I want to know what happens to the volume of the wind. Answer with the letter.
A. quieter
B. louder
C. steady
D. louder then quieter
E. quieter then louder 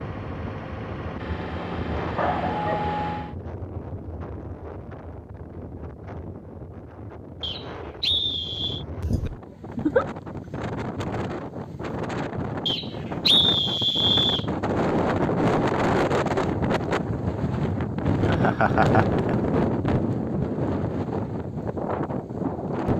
B.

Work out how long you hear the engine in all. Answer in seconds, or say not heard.
3 s.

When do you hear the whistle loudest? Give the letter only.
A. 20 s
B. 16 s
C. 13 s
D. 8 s
C.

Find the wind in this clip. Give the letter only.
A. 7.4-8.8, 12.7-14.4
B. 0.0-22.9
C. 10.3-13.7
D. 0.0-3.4
B.